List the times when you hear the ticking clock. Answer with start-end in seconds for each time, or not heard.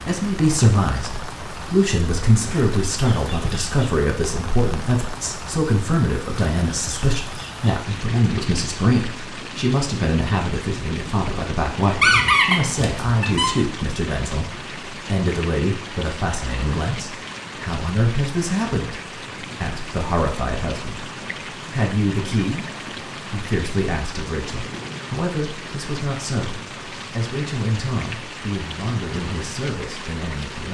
not heard.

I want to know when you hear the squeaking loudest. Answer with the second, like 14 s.
12 s.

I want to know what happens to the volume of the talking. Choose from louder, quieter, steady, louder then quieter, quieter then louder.
quieter.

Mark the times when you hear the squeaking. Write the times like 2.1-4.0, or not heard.
11.9-13.5.